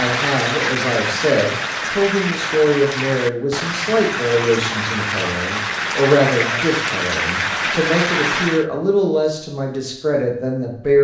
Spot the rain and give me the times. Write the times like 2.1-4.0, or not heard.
0.0-8.7.